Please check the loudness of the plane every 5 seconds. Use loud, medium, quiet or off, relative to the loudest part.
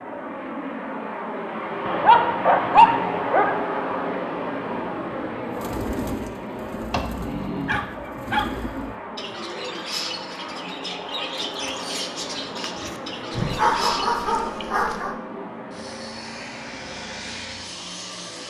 loud, medium, medium, medium.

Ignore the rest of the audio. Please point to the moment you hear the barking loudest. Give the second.
3 s.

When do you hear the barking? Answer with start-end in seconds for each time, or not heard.
1.9-3.6, 6.9-8.5, 13.3-15.2.